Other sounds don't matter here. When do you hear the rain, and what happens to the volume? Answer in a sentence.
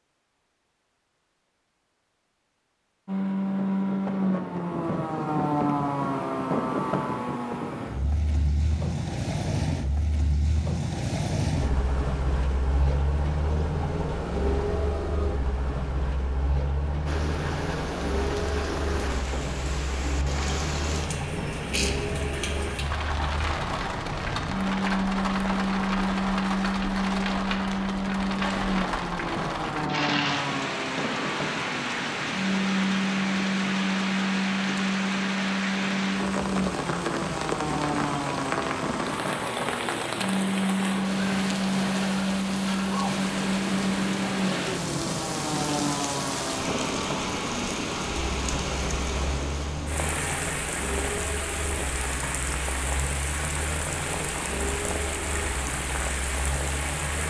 The rain can be heard from 17.1 to 57.2 s, at a steady volume.